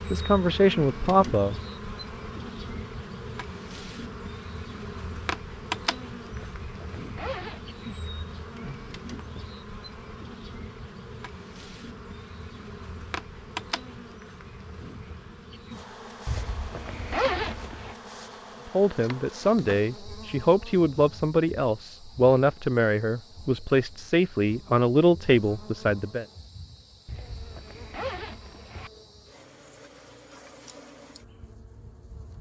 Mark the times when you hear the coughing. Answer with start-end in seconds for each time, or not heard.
not heard.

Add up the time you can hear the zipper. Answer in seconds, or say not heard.
5 s.